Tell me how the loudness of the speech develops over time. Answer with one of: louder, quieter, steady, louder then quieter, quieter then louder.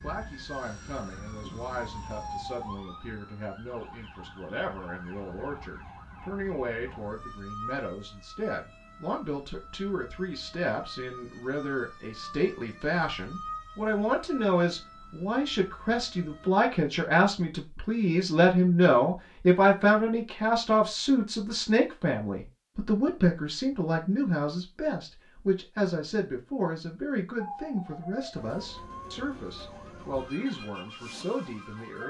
louder then quieter.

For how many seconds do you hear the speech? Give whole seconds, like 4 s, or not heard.
32 s.